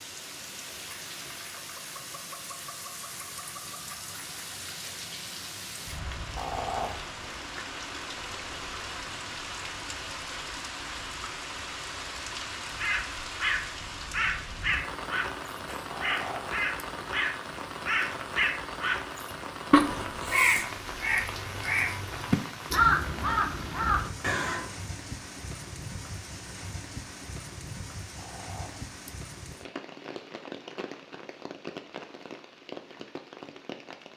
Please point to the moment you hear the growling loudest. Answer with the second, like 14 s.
7 s.